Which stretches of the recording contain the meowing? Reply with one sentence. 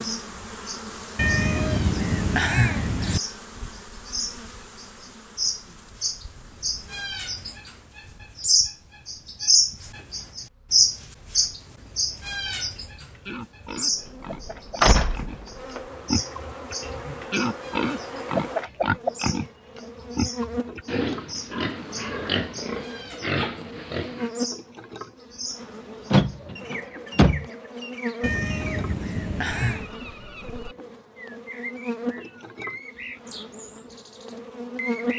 You can hear the meowing from 1.1 to 3.2 s and from 28.2 to 29.9 s.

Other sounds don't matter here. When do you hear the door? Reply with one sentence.
You can hear the door from 14.8 to 15.8 s and from 26.1 to 27.4 s.